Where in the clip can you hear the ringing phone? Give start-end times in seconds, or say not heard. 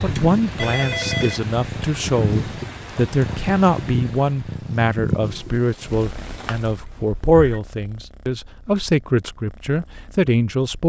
0.6-1.4, 6.2-7.6.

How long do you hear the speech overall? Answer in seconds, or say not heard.
11 s.